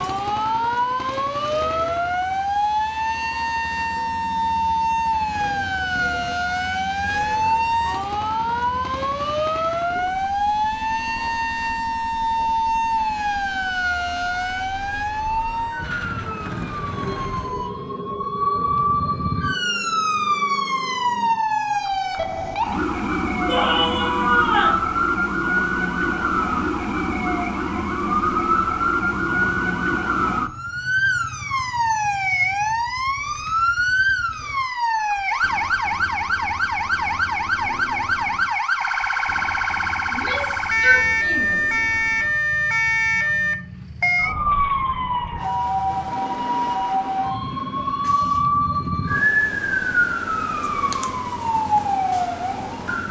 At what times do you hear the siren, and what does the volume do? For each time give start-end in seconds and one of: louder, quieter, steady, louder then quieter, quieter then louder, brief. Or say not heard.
0.0-53.0 steady.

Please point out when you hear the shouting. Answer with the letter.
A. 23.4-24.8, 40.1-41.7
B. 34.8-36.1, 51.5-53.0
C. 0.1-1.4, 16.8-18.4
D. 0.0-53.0
A.